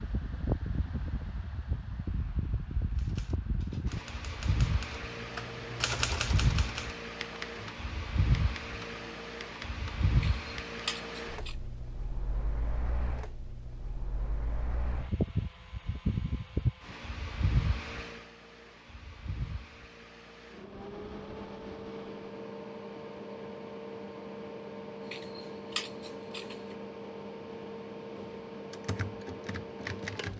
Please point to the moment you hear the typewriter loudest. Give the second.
6 s.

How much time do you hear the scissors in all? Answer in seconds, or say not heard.
3 s.